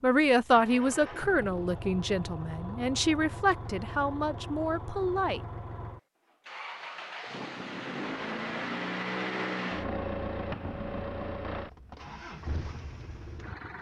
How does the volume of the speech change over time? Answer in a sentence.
The volume of the speech goes down.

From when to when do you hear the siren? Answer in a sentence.
You can't hear the siren here.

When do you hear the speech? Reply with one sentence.
The speech can be heard from 0.0 to 5.4 s.